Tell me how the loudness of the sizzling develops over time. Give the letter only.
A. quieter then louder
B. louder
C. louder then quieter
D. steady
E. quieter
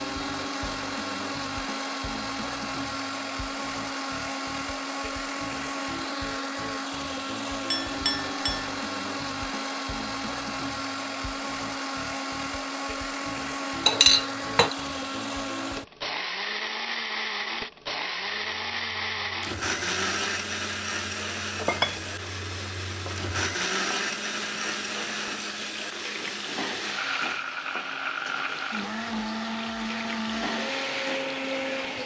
B.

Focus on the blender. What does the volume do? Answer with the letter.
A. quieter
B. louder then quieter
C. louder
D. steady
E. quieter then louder
D.